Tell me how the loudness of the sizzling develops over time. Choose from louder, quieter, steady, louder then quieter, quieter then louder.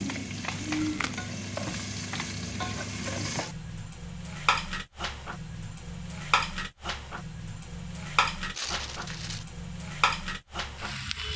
steady.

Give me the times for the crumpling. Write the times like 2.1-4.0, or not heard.
0.7-1.2, 8.5-9.4.